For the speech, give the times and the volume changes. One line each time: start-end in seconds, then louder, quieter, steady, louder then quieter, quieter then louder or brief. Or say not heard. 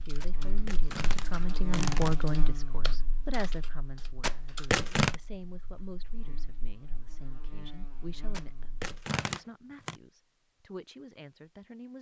0.0-11.9 quieter.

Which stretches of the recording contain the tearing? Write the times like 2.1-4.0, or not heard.
0.2-2.2, 4.2-5.2, 8.3-9.9.